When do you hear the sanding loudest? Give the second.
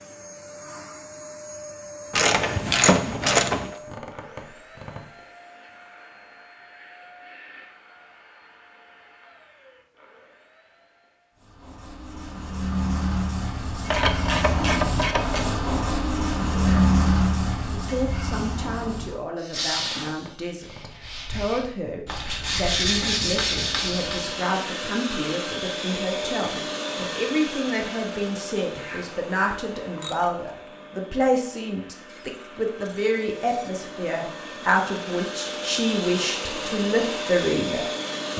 17 s.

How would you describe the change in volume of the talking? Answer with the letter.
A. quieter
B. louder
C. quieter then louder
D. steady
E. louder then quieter
B.